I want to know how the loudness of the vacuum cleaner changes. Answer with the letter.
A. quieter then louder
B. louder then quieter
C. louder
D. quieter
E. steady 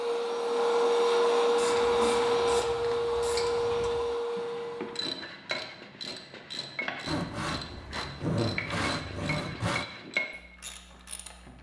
D.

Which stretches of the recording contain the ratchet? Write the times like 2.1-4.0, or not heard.
1.5-11.5.